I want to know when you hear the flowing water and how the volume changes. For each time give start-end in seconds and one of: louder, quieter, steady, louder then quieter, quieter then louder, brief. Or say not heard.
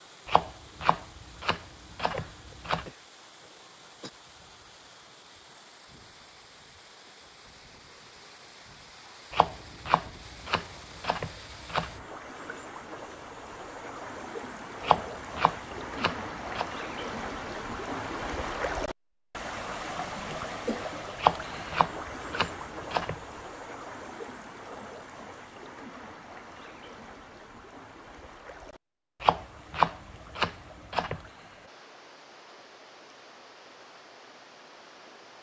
0.0-35.3 louder then quieter.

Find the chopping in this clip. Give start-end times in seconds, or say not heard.
0.2-2.9, 9.3-12.0, 14.8-16.6, 21.1-23.2, 29.2-31.2.